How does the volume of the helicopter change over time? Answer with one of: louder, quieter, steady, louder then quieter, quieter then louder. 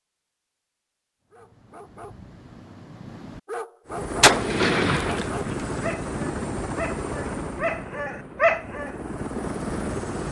quieter then louder.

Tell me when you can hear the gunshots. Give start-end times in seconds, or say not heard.
4.2-5.7.